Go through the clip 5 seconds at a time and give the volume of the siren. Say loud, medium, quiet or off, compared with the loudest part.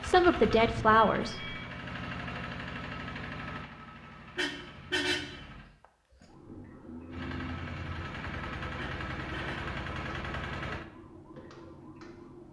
off, loud, loud.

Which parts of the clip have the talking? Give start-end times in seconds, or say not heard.
0.0-1.6.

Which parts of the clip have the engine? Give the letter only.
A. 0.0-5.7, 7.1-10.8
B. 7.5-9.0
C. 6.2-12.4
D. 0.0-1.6
A.